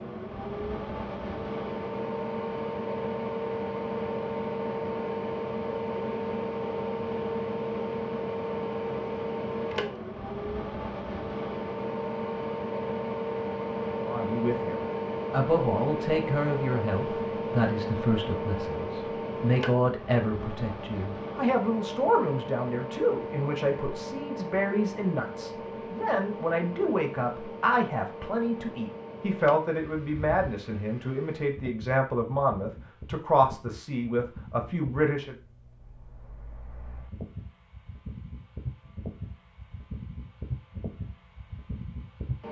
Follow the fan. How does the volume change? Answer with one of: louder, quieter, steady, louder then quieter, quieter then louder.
quieter.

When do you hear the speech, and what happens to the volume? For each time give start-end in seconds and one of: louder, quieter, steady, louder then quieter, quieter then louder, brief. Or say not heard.
14.1-35.4 steady.